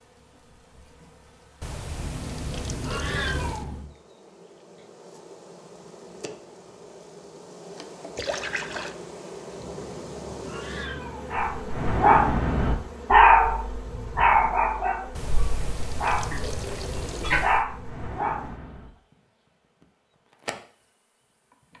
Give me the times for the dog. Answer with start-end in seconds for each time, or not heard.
11.3-18.9.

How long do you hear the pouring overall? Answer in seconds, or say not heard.
5 s.